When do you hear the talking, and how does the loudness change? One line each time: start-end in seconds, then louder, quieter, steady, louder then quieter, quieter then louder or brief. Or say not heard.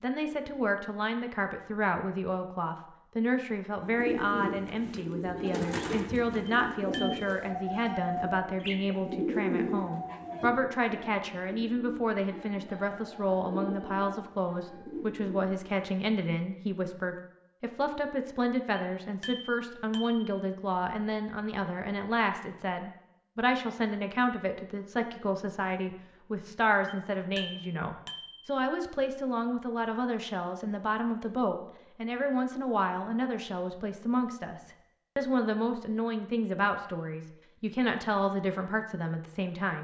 0.0-39.7 steady.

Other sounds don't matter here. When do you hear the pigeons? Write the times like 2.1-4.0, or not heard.
3.8-15.9.